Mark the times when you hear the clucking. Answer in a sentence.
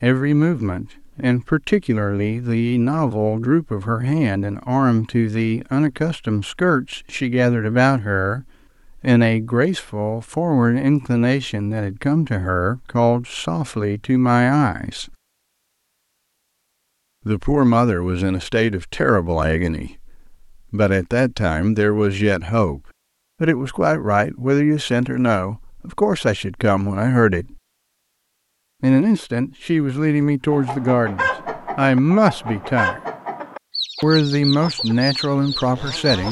The clucking can be heard from 30.2 to 36.2 s.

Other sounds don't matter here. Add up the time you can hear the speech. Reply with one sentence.
The speech can be heard for 32 seconds in total.